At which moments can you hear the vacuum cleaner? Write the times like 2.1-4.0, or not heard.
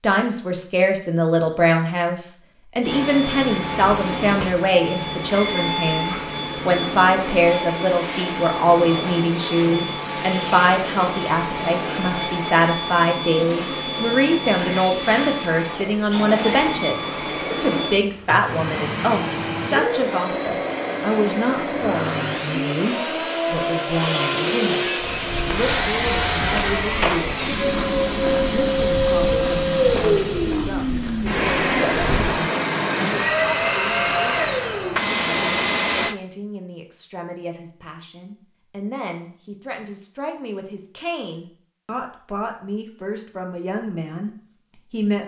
2.8-36.1.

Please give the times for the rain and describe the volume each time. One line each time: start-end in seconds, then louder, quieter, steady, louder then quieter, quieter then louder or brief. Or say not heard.
not heard.